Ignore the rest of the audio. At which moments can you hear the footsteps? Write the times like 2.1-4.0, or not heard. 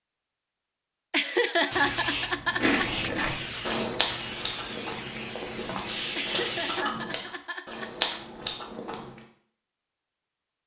not heard.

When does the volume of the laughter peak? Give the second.
2 s.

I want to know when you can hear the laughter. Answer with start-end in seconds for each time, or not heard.
1.1-3.0, 6.2-7.9.